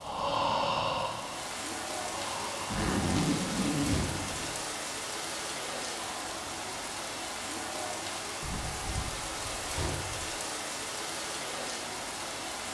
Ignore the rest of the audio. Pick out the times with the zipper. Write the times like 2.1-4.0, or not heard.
2.7-4.5, 8.4-10.3.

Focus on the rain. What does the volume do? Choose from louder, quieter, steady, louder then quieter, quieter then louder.
steady.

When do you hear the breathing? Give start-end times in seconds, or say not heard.
0.0-3.0.